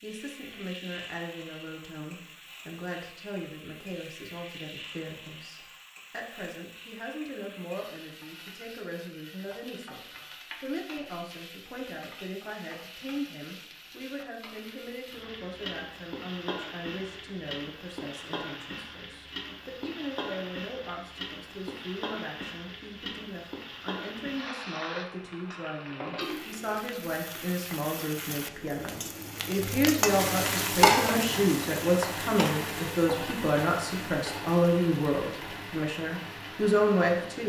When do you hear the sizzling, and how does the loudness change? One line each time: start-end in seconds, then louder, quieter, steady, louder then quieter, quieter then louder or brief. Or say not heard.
0.0-37.4 louder.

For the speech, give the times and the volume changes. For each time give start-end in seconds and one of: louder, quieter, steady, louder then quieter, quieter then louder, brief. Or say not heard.
0.0-37.4 louder.